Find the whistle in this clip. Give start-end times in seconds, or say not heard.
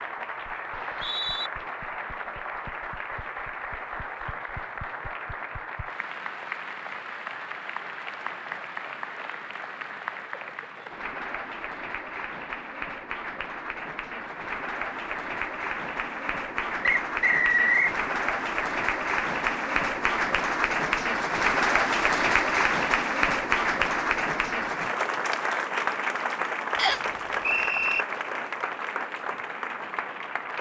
0.7-1.5, 16.8-17.9, 26.8-28.1.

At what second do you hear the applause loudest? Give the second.
22 s.